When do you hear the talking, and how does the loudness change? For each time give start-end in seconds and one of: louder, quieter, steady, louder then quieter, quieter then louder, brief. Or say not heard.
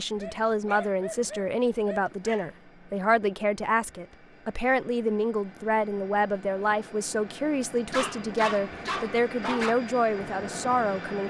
0.0-11.2 steady.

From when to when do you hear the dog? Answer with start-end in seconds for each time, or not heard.
0.1-2.5, 7.9-9.8.